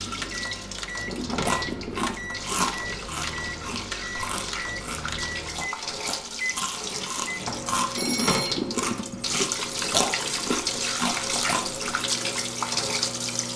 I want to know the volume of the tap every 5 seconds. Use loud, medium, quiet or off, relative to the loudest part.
medium, loud, loud.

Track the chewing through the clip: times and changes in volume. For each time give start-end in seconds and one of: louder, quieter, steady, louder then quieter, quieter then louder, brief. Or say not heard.
1.2-11.8 quieter then louder.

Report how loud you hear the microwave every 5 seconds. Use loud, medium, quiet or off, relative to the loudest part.
loud, loud, medium.